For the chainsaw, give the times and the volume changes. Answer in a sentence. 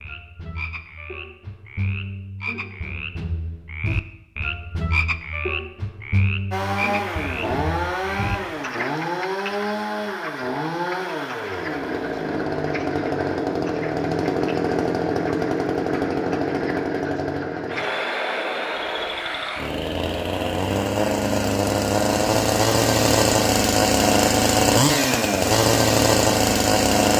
You can hear the chainsaw from 6.5 to 27.1 s, getting louder.